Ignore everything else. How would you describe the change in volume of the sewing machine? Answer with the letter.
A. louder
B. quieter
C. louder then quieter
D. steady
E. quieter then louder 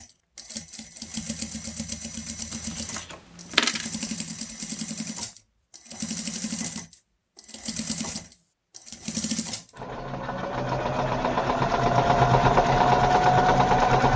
A.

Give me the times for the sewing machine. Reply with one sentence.
The sewing machine can be heard from 0.0 to 14.1 s.